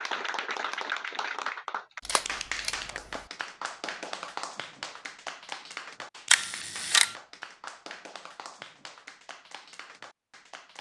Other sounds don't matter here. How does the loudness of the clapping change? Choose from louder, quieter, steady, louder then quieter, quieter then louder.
quieter.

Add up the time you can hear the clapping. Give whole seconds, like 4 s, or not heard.
11 s.